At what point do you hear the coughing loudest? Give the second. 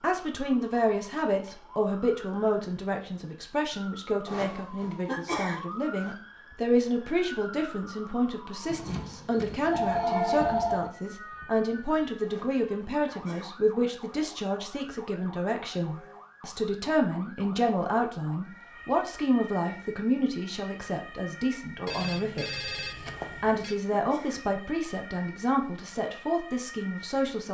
5 s.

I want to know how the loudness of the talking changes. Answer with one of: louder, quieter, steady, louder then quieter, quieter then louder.
steady.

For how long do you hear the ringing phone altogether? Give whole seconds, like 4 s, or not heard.
4 s.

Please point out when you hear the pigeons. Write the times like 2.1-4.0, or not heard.
not heard.